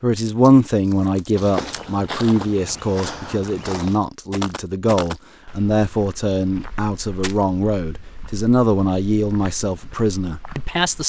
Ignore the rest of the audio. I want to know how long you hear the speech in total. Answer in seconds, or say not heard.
11 s.